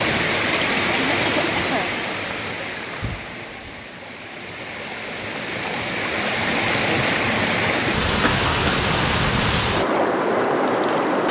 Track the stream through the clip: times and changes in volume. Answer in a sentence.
You can hear the stream from 0.0 to 11.2 s, getting quieter then louder.